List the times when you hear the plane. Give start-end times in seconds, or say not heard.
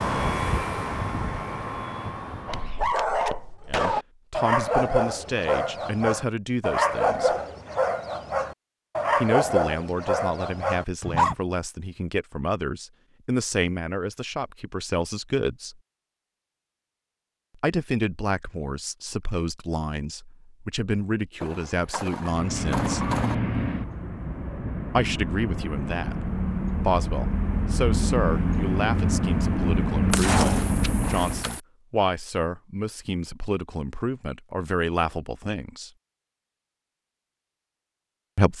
0.0-2.9, 22.2-31.5.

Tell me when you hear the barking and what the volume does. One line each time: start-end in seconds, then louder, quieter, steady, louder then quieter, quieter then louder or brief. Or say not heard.
2.5-11.3 steady.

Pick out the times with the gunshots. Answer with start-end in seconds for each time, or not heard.
2.5-4.0, 21.4-23.4, 30.1-31.6.